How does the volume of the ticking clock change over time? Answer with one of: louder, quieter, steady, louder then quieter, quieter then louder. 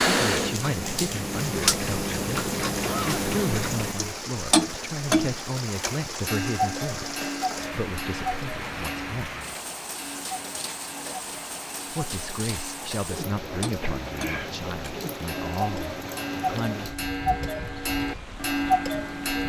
quieter then louder.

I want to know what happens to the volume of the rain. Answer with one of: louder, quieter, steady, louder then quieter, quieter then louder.
steady.